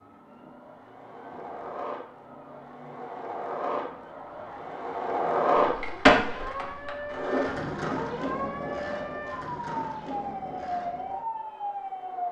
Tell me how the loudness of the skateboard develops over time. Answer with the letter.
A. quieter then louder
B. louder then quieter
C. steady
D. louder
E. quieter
B.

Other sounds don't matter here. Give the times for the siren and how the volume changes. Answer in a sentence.
The siren can be heard from 0.0 to 12.2 s, getting louder.